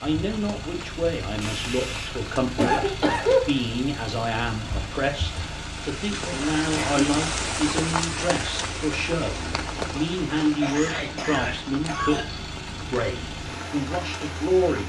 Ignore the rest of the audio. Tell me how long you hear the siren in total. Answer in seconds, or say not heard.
not heard.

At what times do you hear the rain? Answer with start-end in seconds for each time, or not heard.
0.0-14.8.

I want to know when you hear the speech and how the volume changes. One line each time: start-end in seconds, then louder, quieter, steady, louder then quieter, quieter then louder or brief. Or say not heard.
0.0-14.8 steady.